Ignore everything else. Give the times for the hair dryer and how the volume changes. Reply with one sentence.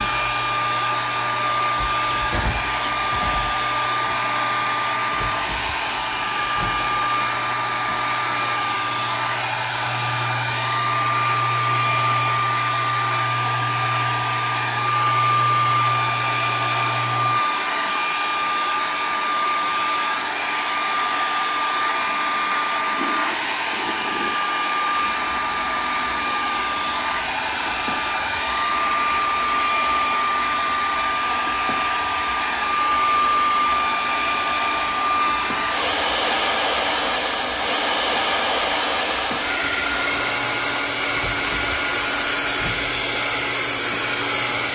You can hear the hair dryer from 0.0 to 44.7 s, at a steady volume.